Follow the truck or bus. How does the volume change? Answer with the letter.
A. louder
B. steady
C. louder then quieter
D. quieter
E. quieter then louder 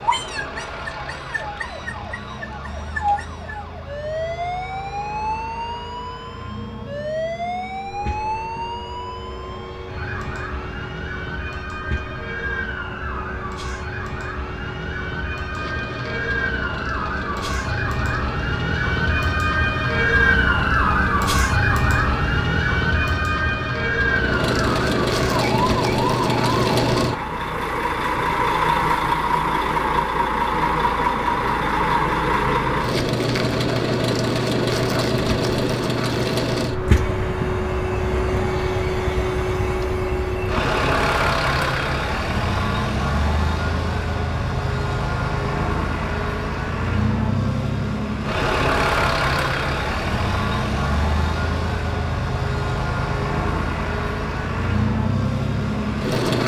A.